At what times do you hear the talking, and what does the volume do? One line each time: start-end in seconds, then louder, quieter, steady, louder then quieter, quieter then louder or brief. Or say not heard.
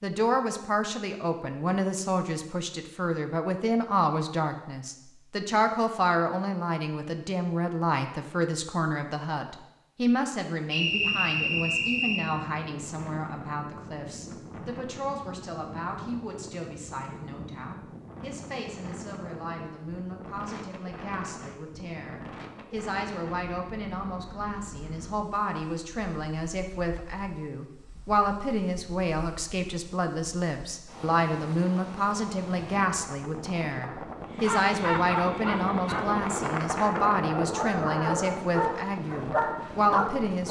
0.0-40.4 quieter then louder.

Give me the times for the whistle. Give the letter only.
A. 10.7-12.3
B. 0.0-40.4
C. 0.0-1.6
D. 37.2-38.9
A.